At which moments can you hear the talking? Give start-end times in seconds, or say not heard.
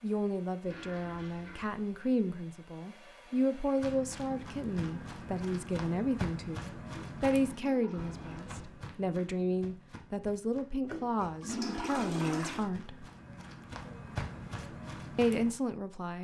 0.0-13.1, 15.2-16.2.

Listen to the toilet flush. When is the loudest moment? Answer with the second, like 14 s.
12 s.